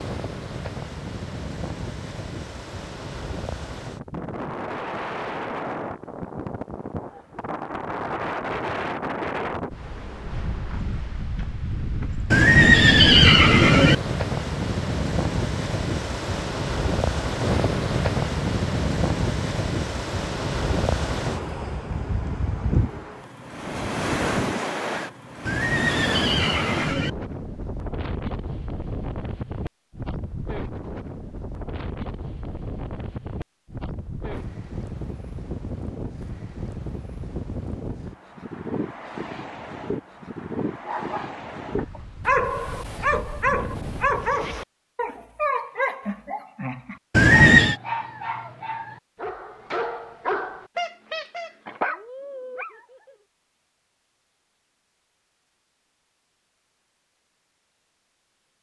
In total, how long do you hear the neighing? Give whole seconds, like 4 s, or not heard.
4 s.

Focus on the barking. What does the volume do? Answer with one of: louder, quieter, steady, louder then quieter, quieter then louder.
quieter.